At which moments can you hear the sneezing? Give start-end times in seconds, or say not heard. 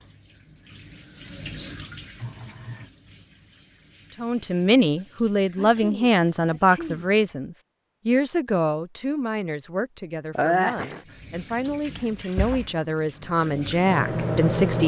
2.1-2.9, 5.5-7.1, 10.3-11.0.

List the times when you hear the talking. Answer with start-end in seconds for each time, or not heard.
4.2-14.8.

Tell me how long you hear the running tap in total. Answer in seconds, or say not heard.
11 s.